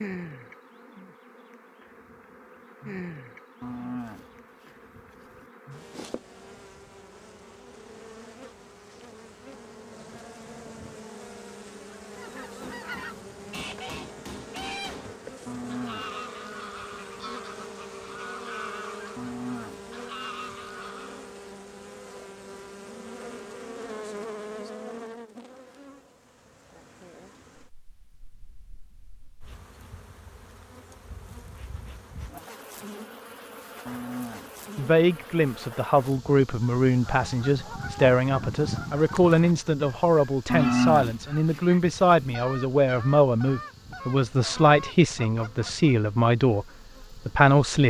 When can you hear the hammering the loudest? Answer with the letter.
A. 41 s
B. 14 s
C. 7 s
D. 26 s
B.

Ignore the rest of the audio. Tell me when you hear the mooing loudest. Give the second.
41 s.